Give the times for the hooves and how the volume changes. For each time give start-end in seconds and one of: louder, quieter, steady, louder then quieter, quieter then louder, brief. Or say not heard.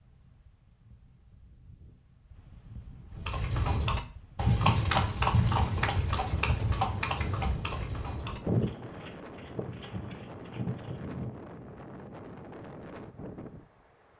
3.1-11.4 quieter.